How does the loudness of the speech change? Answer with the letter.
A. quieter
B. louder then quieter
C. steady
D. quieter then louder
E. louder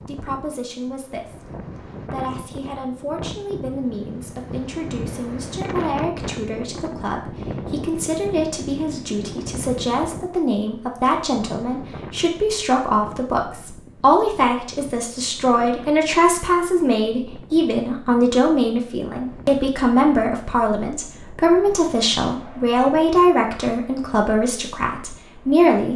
E.